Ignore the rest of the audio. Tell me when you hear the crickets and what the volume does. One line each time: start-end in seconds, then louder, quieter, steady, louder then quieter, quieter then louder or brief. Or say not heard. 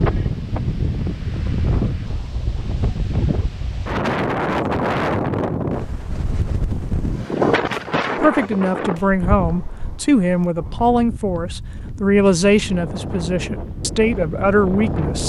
not heard.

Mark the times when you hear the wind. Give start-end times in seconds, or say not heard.
0.0-15.2.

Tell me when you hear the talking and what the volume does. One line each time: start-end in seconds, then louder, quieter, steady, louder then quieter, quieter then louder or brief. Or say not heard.
8.2-15.2 steady.